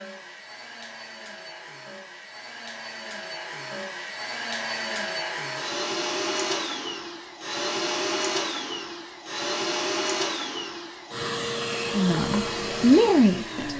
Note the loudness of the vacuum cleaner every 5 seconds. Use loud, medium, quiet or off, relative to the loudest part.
medium, loud, loud.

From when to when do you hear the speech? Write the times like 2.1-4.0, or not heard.
11.9-13.7.